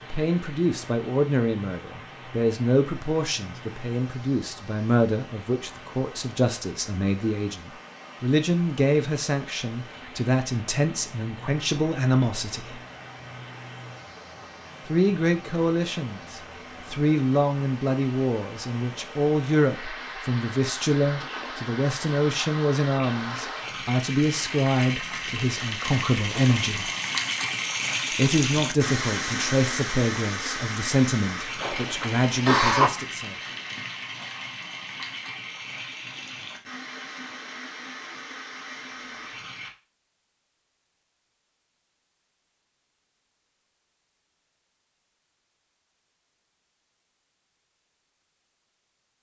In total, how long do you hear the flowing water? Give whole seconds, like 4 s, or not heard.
40 s.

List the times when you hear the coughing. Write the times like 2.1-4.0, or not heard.
31.6-32.9.